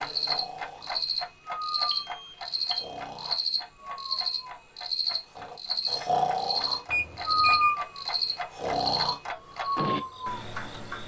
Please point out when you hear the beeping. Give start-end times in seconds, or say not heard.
1.9-2.8, 6.8-7.8.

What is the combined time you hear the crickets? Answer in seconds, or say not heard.
11 s.